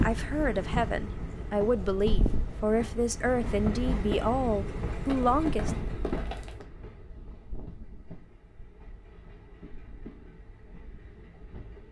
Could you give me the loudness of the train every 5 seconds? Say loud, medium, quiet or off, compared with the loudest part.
loud, medium, quiet.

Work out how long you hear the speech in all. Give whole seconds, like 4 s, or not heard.
6 s.